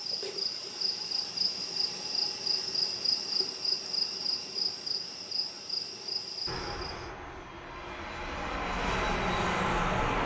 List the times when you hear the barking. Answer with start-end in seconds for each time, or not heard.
not heard.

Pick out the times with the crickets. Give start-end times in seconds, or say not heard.
0.0-7.1.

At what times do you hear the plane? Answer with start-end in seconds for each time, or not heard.
6.5-10.2.